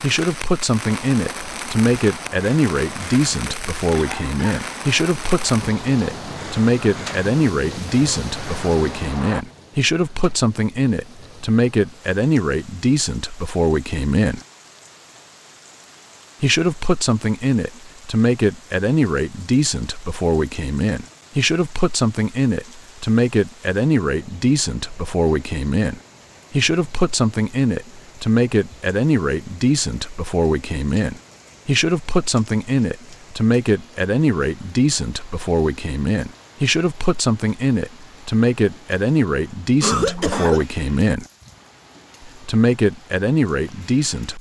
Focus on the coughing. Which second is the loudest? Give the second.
40 s.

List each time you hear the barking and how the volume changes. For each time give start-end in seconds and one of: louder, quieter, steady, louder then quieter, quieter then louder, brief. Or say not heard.
not heard.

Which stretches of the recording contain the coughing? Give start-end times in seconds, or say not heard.
4.0-4.7, 39.8-40.6.